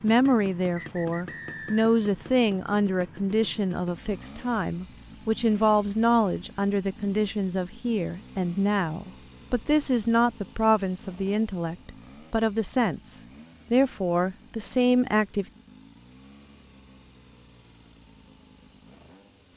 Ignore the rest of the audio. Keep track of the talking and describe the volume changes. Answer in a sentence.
The loudness of the talking stays about the same.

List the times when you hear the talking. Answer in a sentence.
You can hear the talking from 0.0 to 15.4 s.